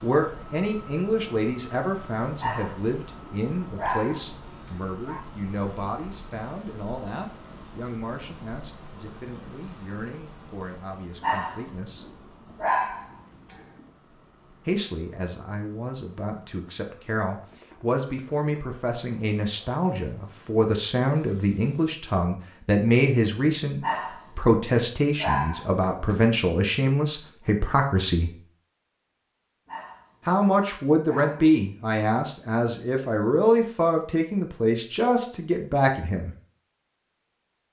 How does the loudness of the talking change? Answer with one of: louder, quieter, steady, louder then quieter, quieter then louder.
quieter then louder.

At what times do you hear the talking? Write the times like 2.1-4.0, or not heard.
0.0-12.2, 14.7-28.4, 30.2-36.3.